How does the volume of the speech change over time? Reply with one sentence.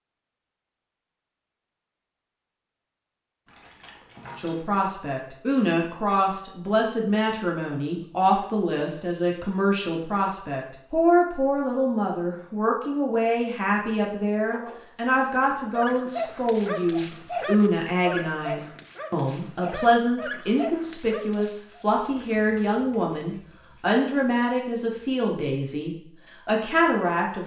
The volume of the speech stays about the same.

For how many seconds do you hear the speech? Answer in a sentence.
The speech can be heard for 23 seconds in total.